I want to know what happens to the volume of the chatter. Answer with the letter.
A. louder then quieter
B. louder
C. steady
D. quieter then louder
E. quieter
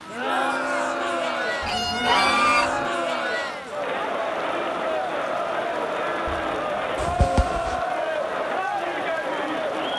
C.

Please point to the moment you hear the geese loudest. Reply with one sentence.
The loudest moment of the geese is at 2 seconds.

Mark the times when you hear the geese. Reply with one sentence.
You can hear the geese from 1.6 to 2.9 s and from 6.2 to 7.8 s.